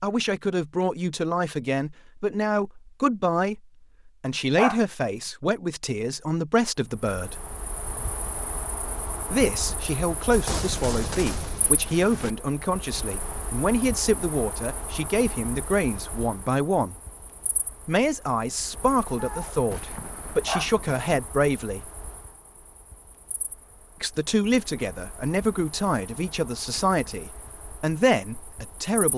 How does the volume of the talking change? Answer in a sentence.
The loudness of the talking stays about the same.